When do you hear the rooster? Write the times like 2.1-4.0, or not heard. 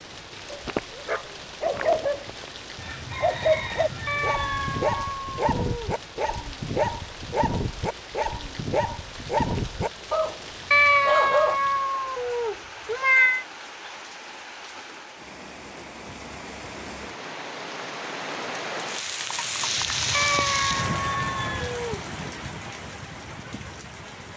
2.8-4.8, 19.8-21.8.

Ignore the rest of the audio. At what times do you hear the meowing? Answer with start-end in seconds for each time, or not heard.
4.0-5.9, 10.7-13.4, 20.1-22.0.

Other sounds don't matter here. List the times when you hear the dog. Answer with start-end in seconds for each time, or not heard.
0.5-2.5, 3.2-11.6.